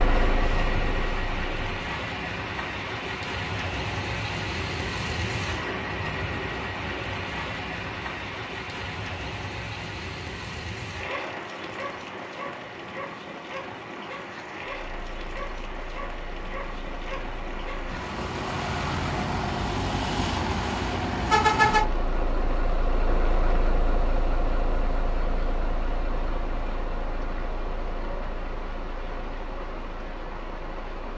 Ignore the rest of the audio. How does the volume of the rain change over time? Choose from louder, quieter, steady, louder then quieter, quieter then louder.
quieter.